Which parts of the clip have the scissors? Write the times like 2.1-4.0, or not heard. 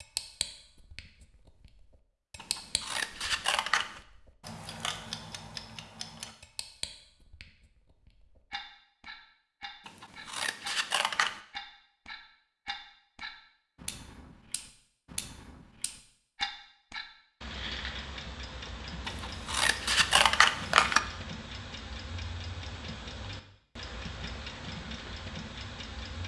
2.4-4.0, 9.8-11.4, 19.1-21.0.